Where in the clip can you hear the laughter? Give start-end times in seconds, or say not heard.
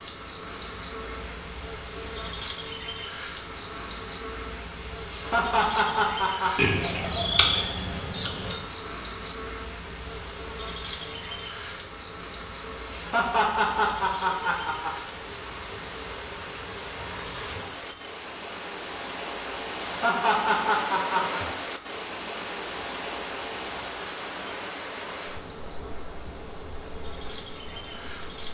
5.1-6.5, 12.9-14.9, 19.8-21.4.